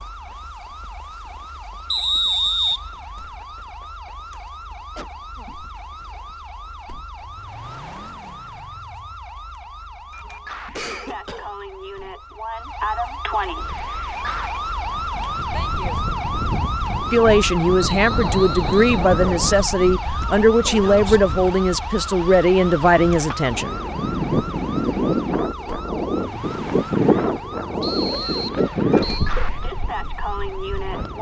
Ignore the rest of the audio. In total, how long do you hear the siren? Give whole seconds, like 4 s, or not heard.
31 s.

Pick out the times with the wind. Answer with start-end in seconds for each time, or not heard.
13.6-31.1.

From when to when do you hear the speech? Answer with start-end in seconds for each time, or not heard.
17.1-23.8.